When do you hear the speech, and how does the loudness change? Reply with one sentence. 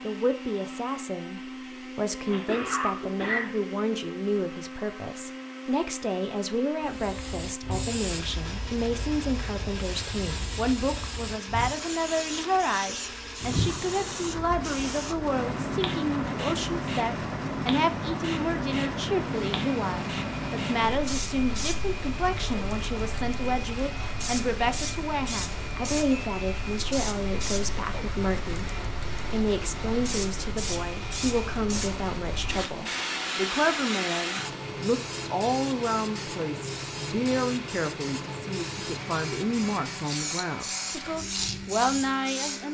You can hear the speech from 0.0 to 42.7 s, at a steady volume.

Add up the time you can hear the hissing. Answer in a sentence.
You can hear the hissing for 36 seconds altogether.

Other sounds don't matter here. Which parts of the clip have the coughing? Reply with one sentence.
You can hear the coughing from 2.2 to 3.5 s.